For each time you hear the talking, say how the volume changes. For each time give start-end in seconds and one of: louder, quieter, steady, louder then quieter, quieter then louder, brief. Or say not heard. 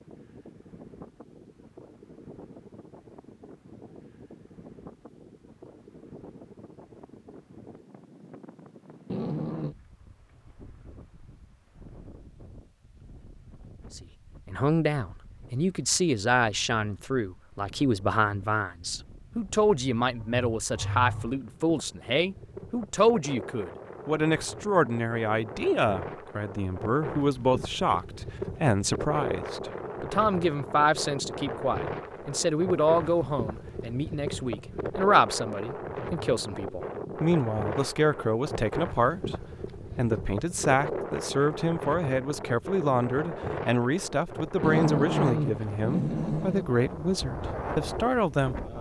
13.9-48.7 steady.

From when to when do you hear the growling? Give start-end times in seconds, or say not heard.
9.1-9.8, 20.1-21.4, 44.6-46.6.